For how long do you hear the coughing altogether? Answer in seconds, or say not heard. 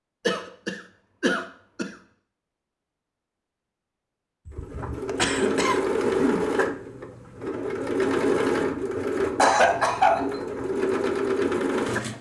4 s.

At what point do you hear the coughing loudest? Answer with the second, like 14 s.
10 s.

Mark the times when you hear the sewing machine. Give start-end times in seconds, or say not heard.
4.5-12.1.